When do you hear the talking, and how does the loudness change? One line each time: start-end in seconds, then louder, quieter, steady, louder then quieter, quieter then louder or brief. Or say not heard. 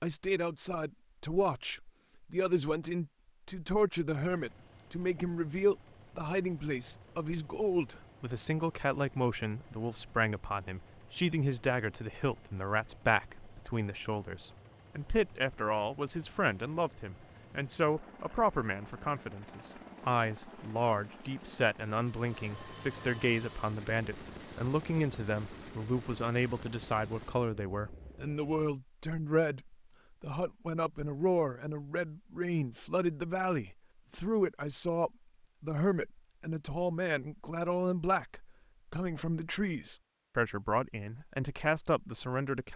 0.0-42.7 steady.